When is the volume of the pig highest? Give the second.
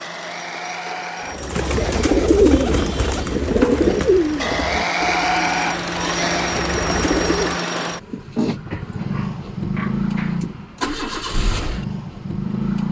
5 s.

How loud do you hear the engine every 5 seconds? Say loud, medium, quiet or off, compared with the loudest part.
medium, loud, loud.